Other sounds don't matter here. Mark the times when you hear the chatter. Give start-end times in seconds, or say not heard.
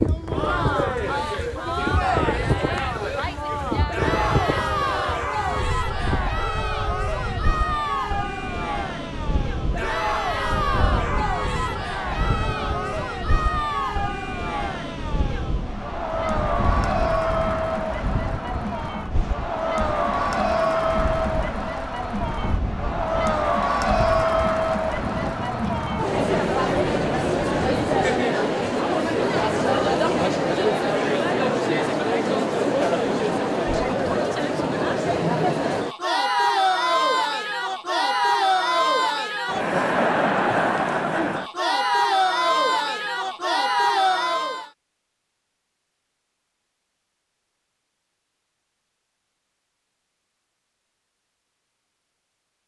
0.1-44.7.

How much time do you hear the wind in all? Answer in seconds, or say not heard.
28 s.